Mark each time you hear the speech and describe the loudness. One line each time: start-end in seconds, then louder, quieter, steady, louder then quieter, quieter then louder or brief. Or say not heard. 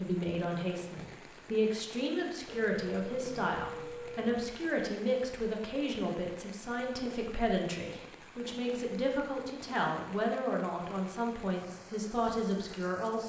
0.0-13.2 steady.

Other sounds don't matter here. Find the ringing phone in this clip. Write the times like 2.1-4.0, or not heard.
2.5-4.5.